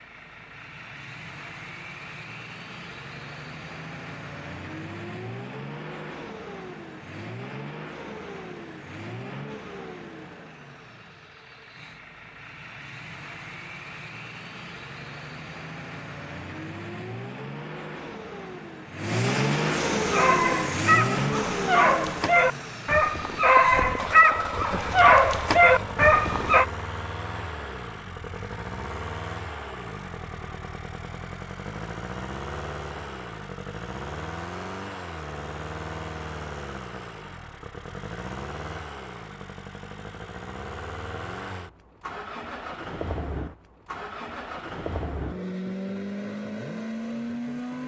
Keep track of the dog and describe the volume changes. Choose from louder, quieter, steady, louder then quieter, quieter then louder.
louder.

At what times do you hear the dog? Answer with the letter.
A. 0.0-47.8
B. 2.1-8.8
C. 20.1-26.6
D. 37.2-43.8
C.